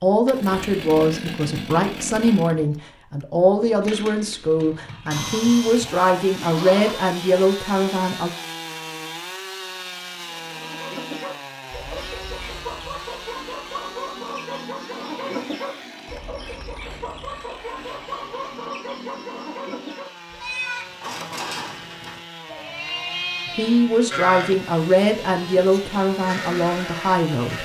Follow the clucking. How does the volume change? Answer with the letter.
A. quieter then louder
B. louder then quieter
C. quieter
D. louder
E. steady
E.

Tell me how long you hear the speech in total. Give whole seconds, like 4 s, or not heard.
12 s.